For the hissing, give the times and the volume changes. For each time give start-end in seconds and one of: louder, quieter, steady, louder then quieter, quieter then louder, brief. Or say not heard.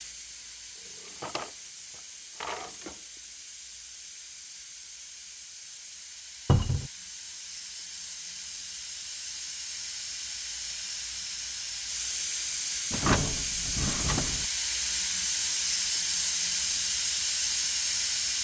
0.0-18.3 louder.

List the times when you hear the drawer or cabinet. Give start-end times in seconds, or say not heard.
1.0-3.0, 6.5-6.9, 12.9-14.4.